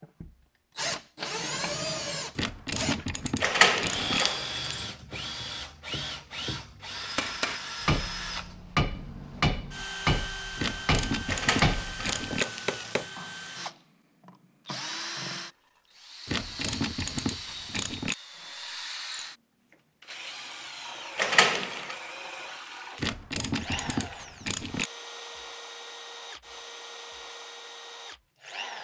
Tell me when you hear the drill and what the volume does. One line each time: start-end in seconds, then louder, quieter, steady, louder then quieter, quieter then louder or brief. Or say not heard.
0.0-28.7 quieter.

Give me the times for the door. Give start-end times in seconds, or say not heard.
3.4-4.8, 11.2-12.8, 21.1-21.9.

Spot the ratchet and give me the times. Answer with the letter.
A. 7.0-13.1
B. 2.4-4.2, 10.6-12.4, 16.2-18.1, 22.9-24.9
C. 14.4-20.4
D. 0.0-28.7
B.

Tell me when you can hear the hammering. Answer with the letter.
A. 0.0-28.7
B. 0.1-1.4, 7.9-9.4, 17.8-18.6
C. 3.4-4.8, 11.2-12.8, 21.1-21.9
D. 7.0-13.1
D.